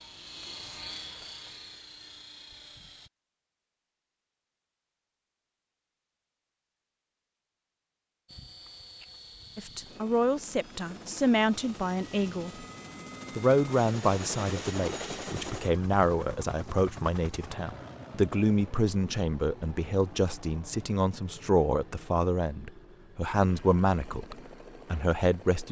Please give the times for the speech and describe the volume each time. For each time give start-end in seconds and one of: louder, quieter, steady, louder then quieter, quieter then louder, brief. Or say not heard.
9.6-12.5 brief
13.3-25.6 steady.